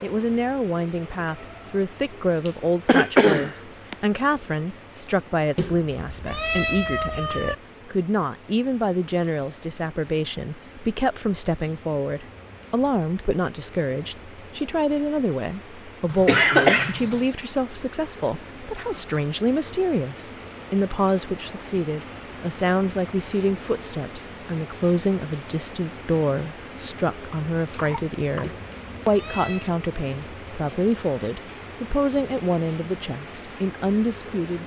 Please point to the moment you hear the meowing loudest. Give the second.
7 s.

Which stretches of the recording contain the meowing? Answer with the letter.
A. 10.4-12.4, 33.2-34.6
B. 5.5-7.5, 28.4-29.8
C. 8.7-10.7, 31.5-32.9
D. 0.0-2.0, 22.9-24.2
B.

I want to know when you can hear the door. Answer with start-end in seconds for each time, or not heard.
not heard.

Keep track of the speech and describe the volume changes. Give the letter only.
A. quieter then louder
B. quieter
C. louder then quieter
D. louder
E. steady
E.